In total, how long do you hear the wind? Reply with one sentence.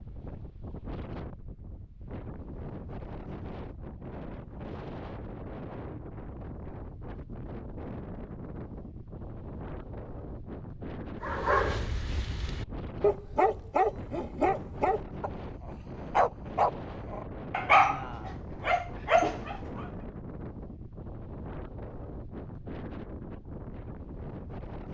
The wind can be heard for 25 seconds in total.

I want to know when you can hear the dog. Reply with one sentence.
You can hear the dog from 11.2 to 19.9 s.